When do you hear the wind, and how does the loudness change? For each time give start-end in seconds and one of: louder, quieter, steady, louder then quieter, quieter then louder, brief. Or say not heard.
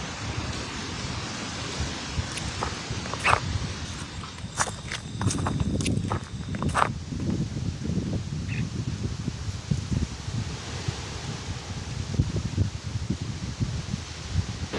0.0-14.7 steady.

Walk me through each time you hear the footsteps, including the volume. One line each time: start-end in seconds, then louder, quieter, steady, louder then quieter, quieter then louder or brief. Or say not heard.
2.3-7.5 quieter then louder.